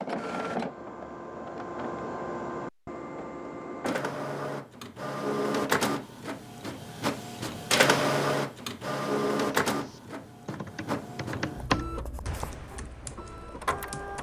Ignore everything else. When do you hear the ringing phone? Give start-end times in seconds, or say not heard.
not heard.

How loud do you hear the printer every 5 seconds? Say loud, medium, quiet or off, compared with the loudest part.
medium, loud, medium.